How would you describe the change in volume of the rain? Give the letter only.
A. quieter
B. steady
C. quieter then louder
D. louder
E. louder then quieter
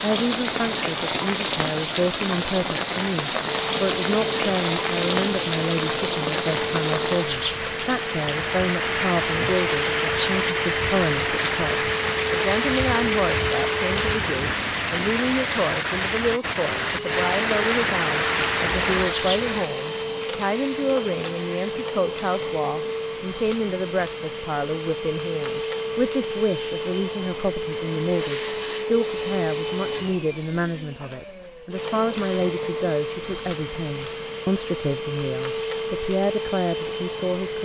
B.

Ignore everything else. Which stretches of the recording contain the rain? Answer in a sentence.
The rain can be heard from 0.0 to 19.7 s.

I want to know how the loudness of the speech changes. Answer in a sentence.
The loudness of the speech stays about the same.